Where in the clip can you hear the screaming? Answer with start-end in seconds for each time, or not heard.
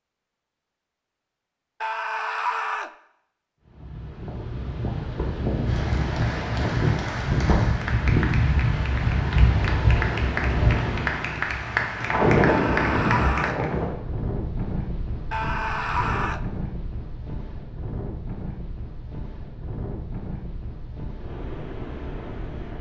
1.8-2.9, 12.4-13.6, 15.3-16.4.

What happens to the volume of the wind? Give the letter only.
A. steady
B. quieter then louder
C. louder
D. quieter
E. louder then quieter
D.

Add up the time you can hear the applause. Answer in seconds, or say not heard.
8 s.